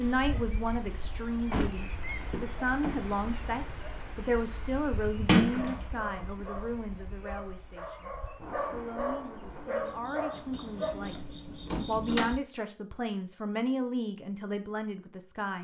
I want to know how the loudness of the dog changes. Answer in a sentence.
The loudness of the dog goes up.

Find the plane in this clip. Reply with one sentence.
The plane can't be heard in this clip.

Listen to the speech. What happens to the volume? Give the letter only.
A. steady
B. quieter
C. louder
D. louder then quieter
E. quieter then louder
E.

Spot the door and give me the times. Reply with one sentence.
You can hear the door from 1.5 to 3.1 s, from 5.2 to 6.2 s and from 11.0 to 12.3 s.